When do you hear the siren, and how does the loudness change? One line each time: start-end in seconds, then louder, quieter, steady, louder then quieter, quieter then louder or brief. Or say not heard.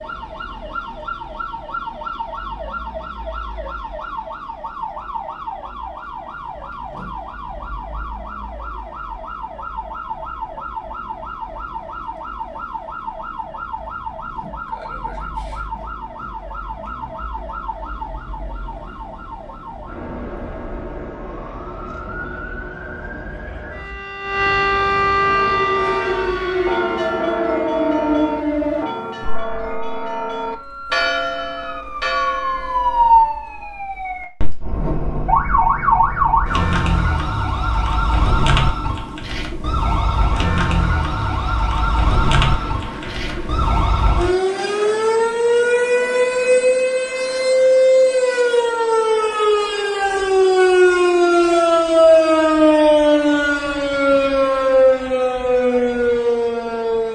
0.0-57.1 louder.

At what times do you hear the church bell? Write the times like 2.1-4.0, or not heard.
25.4-33.2.